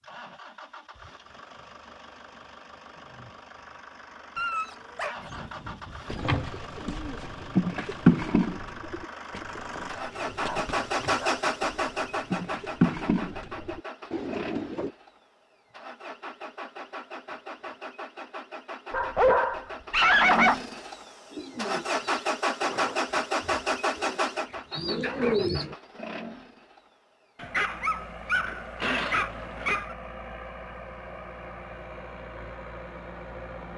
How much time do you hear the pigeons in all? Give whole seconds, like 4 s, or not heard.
13 s.